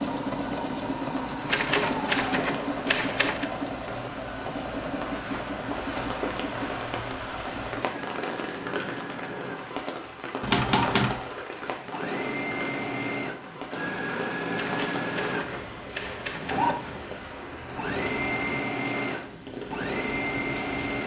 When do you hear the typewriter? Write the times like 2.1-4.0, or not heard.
1.4-3.5, 10.4-11.2, 14.6-16.6.